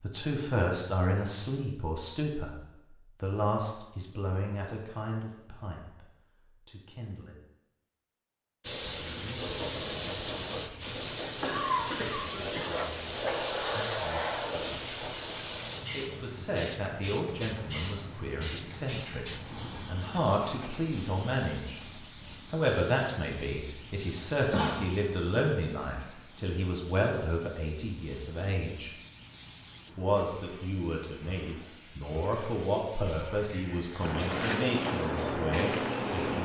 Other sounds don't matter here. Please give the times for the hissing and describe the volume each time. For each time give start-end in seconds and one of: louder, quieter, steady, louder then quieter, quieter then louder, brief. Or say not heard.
8.6-36.4 quieter then louder.